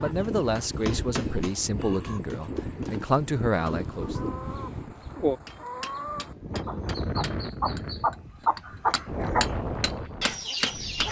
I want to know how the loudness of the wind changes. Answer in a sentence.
The volume of the wind stays about the same.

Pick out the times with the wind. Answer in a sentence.
You can hear the wind from 0.0 to 11.0 s.